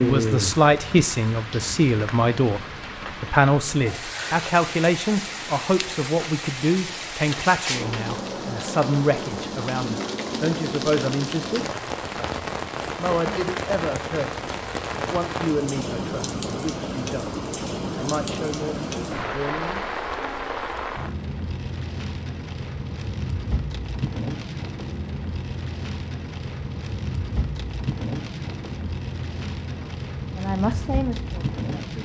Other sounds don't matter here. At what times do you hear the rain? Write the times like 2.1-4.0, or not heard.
0.0-32.0.